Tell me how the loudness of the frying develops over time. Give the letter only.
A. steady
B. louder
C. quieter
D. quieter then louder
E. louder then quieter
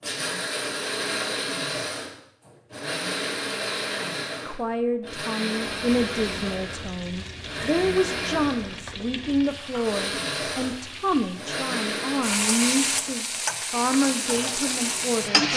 B.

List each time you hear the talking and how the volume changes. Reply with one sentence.
You can hear the talking from 4.5 to 15.5 s, at a steady volume.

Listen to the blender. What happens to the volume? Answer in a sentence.
The volume of the blender goes down.